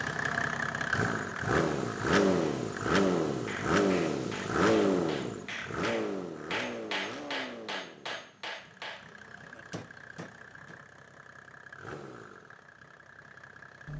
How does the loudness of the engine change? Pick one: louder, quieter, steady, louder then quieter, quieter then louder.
quieter.